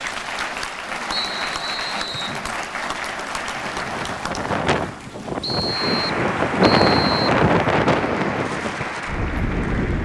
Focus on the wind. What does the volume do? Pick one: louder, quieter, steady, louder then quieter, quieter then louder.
louder then quieter.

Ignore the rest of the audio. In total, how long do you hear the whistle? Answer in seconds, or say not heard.
3 s.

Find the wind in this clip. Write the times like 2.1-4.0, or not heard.
3.8-10.0.